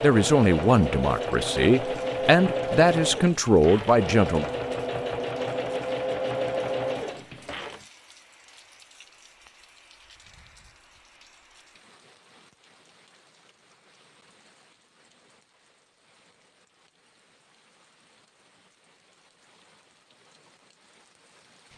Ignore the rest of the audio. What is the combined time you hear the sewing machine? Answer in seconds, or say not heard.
8 s.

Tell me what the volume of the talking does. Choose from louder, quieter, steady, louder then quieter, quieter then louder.
steady.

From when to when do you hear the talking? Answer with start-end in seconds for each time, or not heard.
0.0-4.5.